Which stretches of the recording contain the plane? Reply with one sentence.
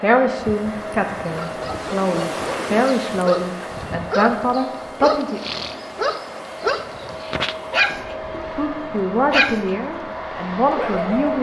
The plane can be heard from 0.0 to 11.3 s.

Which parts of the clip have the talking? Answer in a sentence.
You can hear the talking from 0.0 to 5.4 s and from 8.3 to 11.3 s.